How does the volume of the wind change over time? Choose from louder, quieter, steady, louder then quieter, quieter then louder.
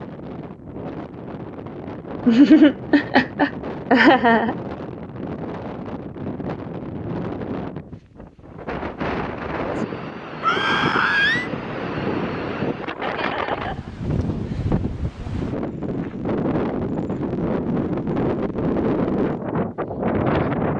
louder.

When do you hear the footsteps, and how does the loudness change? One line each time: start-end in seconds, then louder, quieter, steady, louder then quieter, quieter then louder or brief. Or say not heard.
not heard.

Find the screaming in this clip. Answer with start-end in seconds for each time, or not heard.
10.4-11.5.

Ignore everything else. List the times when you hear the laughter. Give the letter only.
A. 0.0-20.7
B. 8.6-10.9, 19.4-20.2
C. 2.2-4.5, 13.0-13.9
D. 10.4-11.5
C.